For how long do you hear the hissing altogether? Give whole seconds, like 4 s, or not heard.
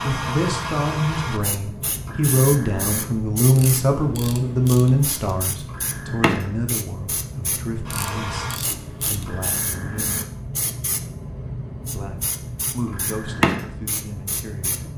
15 s.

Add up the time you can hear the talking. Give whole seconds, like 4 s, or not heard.
13 s.